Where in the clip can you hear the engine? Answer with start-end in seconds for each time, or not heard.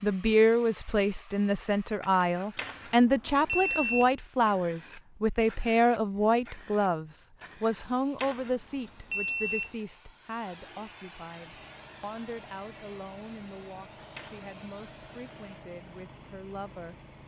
11.3-17.2.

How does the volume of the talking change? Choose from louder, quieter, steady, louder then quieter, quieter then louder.
quieter.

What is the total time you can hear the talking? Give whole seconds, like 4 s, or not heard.
17 s.